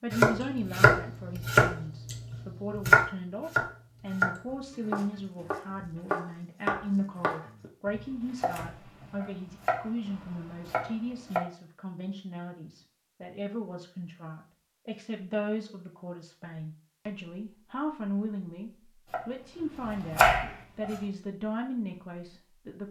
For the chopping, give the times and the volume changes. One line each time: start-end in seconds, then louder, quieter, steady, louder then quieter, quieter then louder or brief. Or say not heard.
0.1-11.4 quieter
19.1-20.9 brief.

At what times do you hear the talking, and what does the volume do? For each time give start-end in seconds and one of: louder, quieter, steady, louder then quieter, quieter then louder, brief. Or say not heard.
0.0-22.8 steady.